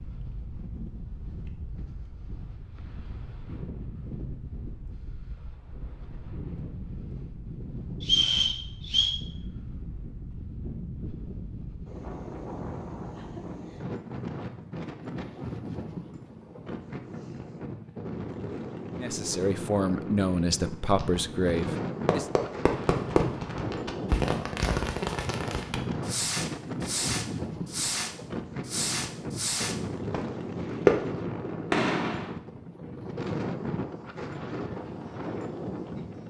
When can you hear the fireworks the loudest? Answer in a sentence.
The loudest moment of the fireworks is at 31 seconds.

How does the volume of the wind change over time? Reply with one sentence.
The loudness of the wind goes up.